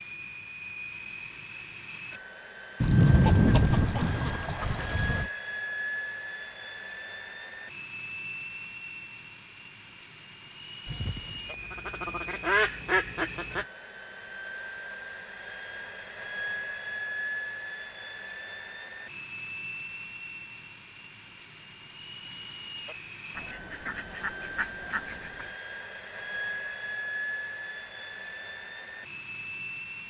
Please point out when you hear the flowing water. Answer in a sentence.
The flowing water can't be heard in this clip.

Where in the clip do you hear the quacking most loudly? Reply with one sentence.
The loudest moment of the quacking is at 3 seconds.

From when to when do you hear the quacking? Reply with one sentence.
The quacking can be heard from 2.8 to 5.3 s, from 10.8 to 13.7 s and from 23.4 to 25.5 s.